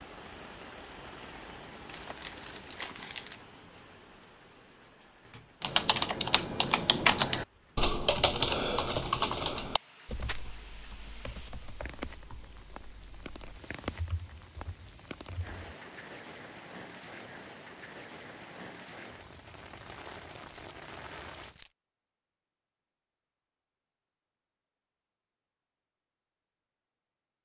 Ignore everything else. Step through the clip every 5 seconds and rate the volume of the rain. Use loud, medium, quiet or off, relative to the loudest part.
loud, quiet, loud, loud, loud, off.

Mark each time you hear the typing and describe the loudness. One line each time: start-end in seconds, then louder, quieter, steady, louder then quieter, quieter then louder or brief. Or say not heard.
5.6-15.7 quieter.